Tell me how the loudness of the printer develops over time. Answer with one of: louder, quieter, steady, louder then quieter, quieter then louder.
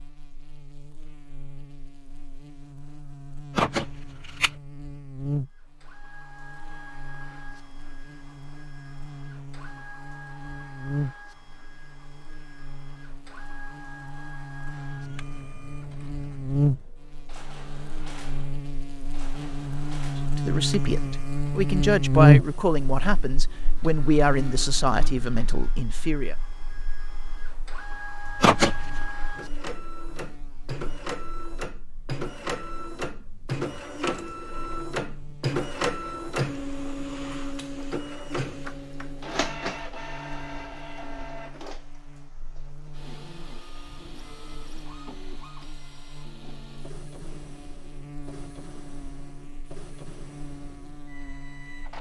louder then quieter.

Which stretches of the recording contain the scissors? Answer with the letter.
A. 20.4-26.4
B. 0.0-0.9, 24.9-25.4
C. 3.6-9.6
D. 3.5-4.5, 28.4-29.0
D.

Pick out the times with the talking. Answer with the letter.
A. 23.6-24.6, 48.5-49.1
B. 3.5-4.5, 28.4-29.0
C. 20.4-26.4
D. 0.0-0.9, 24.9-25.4
C.